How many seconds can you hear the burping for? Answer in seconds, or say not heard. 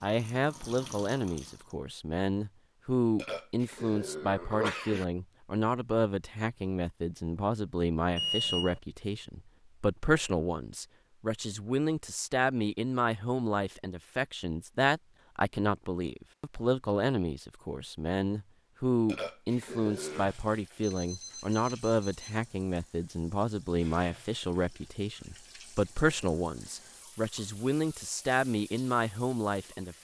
3 s.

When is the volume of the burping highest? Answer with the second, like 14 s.
5 s.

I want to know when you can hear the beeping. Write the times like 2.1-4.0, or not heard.
8.2-8.8, 20.8-22.4.